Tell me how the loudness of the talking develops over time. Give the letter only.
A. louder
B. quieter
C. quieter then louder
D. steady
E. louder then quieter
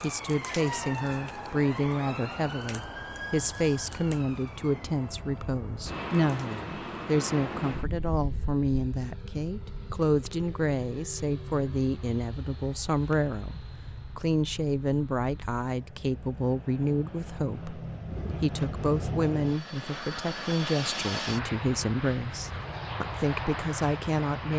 D.